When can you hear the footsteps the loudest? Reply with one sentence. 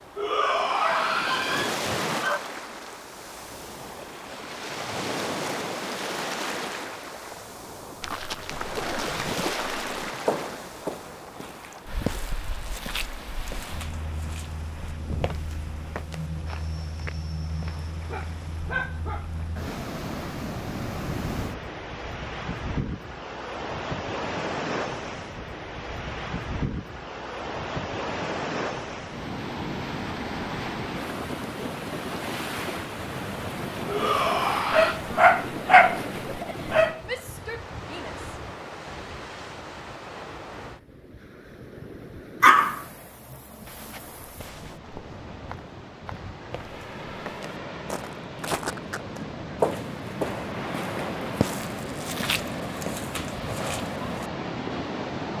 The loudest moment of the footsteps is at 50 seconds.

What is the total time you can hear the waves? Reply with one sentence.
You can hear the waves for 55 seconds altogether.